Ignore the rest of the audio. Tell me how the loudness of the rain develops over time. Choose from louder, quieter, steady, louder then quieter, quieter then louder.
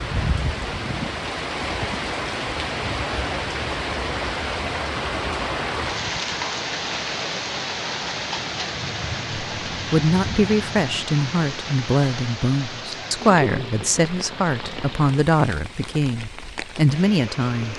quieter.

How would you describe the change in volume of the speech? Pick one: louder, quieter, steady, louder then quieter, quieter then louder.
steady.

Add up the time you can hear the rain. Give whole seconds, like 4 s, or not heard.
18 s.